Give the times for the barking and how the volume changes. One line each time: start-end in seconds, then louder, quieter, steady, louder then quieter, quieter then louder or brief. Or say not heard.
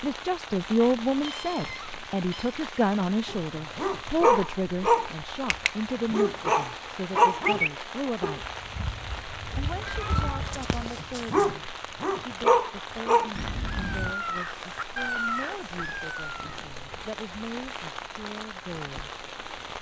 3.2-13.3 quieter then louder.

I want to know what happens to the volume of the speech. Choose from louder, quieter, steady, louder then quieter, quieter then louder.
quieter.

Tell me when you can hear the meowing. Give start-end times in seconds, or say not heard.
1.2-2.5, 9.7-10.6, 13.3-14.2.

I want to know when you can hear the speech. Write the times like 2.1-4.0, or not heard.
0.0-8.6, 9.6-19.1.